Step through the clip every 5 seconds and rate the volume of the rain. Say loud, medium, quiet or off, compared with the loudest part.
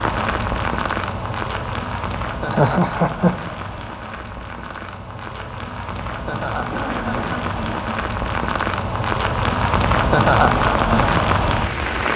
medium, medium, loud.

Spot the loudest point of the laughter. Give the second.
3 s.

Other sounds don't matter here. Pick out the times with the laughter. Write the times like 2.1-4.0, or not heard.
2.5-3.5, 6.7-7.8.